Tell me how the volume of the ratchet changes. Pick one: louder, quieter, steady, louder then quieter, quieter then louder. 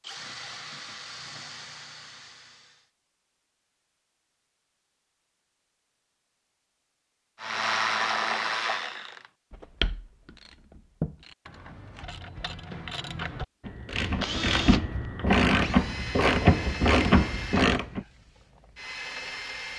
quieter then louder.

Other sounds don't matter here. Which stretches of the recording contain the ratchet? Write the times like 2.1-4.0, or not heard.
7.4-18.0.